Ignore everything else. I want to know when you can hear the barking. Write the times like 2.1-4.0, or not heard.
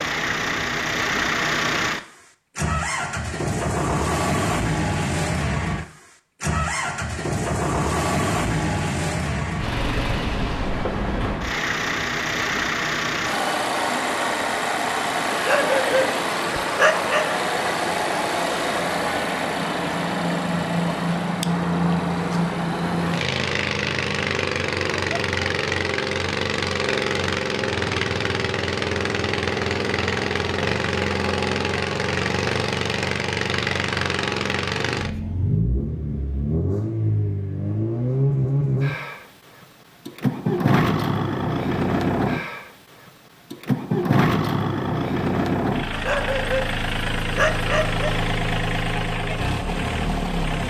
15.3-17.2, 45.9-48.0.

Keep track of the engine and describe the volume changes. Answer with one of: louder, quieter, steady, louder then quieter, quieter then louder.
steady.